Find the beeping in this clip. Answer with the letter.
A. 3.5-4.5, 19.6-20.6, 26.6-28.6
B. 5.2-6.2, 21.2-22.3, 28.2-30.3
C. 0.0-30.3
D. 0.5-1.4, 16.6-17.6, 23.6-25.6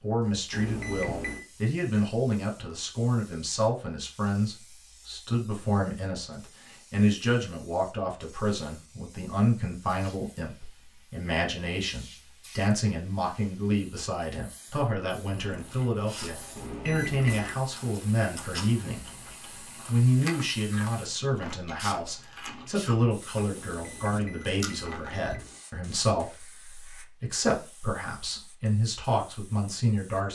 D.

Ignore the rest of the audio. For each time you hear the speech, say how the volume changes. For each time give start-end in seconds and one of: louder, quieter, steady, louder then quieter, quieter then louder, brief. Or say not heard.
0.0-30.3 steady.